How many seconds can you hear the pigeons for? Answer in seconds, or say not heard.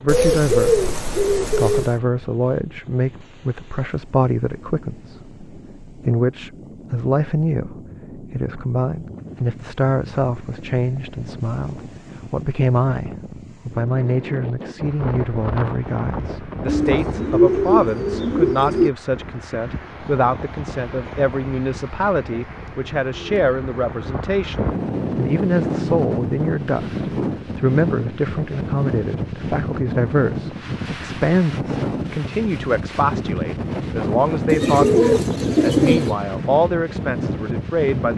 6 s.